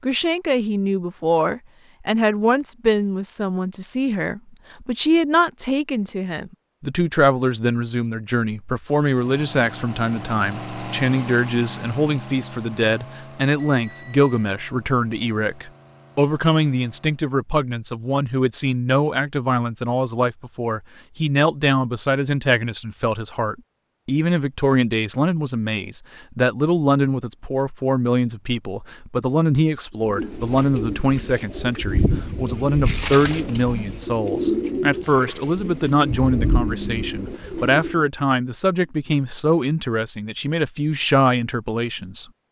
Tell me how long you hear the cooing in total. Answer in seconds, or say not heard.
8 s.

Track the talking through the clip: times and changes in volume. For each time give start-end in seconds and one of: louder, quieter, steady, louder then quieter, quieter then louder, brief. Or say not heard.
0.0-42.2 steady.